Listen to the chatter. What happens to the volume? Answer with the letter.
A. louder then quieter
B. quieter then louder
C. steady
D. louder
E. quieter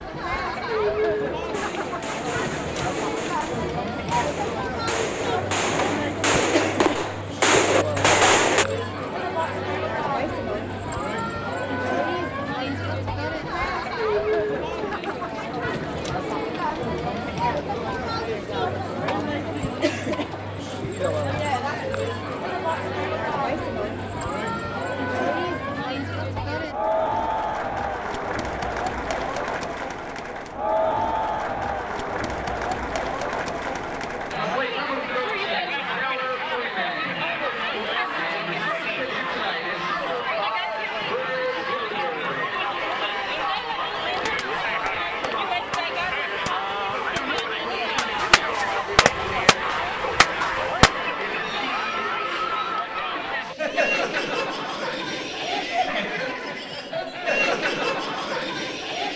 C.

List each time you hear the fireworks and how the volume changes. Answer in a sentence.
You can hear the fireworks from 1.5 to 8.7 s, getting louder; and from 44.1 to 50.9 s, getting louder.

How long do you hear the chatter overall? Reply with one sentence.
You can hear the chatter for 59 seconds altogether.